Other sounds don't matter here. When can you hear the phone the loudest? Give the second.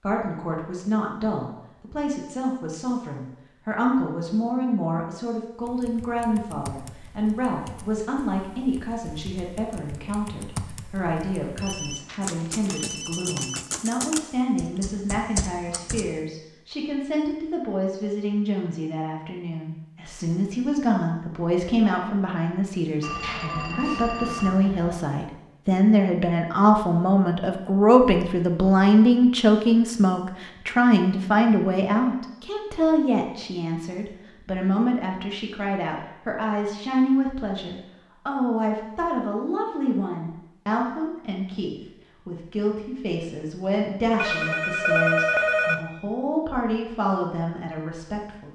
45 s.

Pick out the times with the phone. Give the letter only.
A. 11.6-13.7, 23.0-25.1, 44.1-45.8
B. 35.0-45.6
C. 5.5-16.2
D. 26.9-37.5
A.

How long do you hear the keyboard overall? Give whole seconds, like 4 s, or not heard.
11 s.